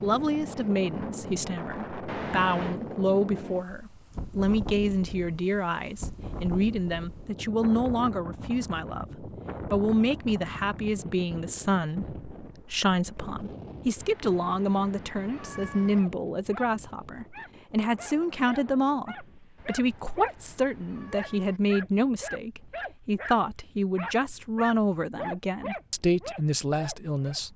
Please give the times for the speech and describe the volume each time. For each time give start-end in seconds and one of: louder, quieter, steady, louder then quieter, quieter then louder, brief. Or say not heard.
0.0-27.5 steady.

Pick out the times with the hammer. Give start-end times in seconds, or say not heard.
not heard.